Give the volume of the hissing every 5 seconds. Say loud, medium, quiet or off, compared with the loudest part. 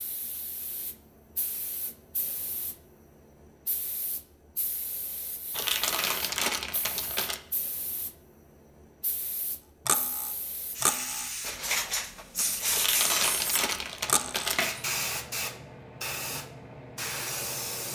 quiet, quiet, loud, loud.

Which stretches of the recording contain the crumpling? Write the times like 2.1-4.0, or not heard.
5.5-7.4, 12.7-14.7.